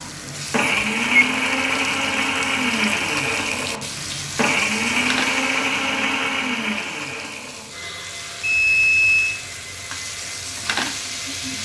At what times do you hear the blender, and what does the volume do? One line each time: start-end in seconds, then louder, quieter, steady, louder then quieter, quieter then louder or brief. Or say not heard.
0.0-11.5 quieter.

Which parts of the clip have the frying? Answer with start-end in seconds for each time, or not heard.
0.0-11.5.